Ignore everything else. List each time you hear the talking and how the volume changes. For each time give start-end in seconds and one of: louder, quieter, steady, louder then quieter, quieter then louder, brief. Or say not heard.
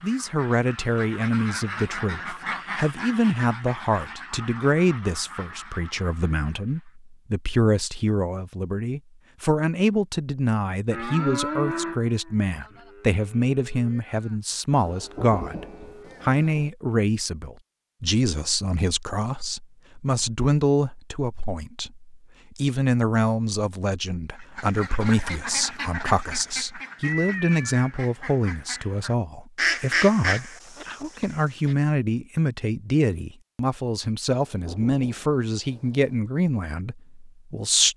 0.0-37.9 steady.